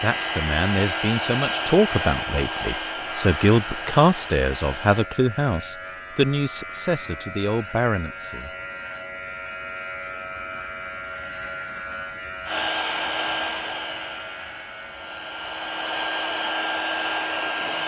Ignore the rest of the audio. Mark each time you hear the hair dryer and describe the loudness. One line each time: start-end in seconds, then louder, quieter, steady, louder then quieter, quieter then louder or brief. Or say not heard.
0.0-5.0 quieter
12.4-17.8 quieter then louder.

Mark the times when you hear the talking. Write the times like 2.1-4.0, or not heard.
0.0-8.5.